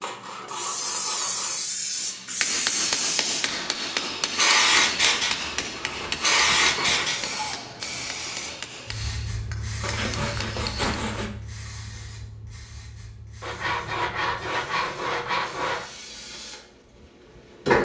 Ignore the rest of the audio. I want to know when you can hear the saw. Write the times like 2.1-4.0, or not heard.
0.0-1.6, 4.8-7.2, 9.8-11.3, 13.4-15.8.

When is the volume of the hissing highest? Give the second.
5 s.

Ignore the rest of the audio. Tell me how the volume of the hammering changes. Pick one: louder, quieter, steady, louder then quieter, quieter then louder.
quieter.